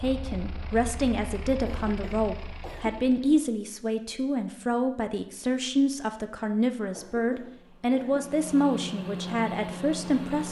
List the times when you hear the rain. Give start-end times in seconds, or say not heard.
not heard.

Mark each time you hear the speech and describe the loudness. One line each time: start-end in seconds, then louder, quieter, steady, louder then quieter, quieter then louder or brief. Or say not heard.
0.0-10.4 steady.